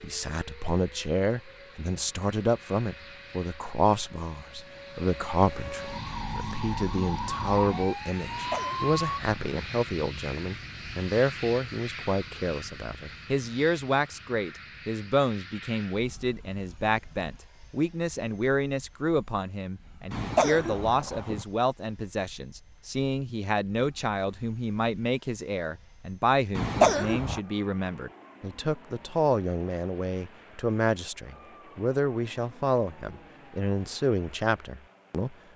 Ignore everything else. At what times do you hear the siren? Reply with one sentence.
The siren can be heard from 0.0 to 9.2 s.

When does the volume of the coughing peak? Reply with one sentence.
The loudest moment of the coughing is at 27 seconds.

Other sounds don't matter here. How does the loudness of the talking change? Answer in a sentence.
The volume of the talking stays about the same.